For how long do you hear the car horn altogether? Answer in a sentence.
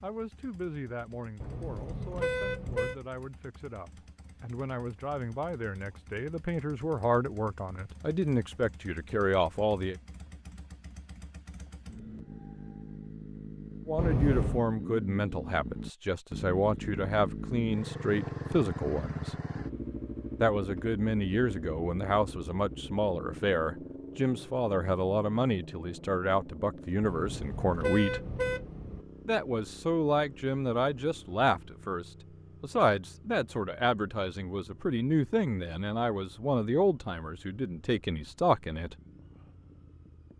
The car horn can be heard for 4 seconds in total.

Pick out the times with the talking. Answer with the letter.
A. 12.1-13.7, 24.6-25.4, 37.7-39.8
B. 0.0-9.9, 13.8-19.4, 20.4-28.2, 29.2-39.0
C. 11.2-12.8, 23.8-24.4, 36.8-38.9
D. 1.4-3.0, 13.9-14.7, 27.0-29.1
B.